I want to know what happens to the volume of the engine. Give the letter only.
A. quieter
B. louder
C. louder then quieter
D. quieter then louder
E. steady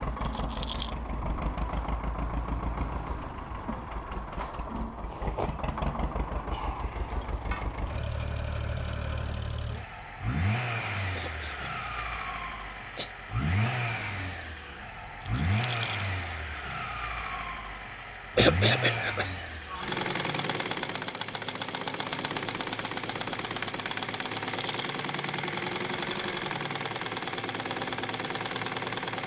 E.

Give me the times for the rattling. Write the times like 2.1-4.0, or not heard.
0.1-0.9, 15.2-16.1, 24.1-24.9.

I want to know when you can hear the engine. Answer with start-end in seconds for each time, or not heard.
0.0-29.2.